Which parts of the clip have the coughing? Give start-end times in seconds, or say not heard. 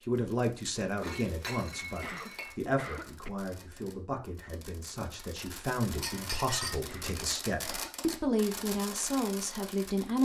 2.0-3.3, 6.8-8.1.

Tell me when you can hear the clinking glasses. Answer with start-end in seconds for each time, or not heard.
1.0-2.5, 5.9-6.8.